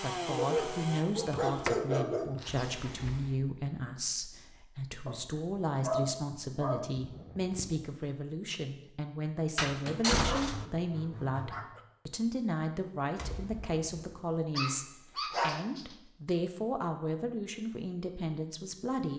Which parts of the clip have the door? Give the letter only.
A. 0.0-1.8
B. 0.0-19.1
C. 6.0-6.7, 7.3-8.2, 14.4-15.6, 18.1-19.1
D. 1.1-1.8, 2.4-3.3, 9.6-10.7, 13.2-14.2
D.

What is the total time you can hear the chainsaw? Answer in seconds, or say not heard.
2 s.